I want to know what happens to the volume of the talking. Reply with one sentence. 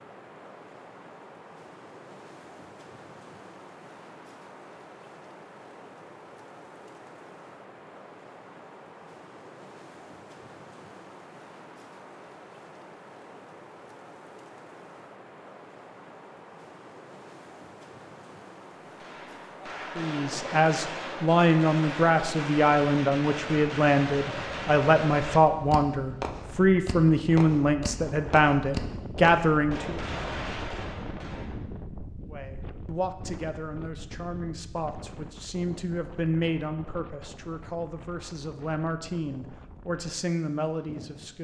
The volume of the talking goes down.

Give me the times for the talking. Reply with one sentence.
The talking can be heard from 19.9 to 30.0 s and from 32.2 to 41.3 s.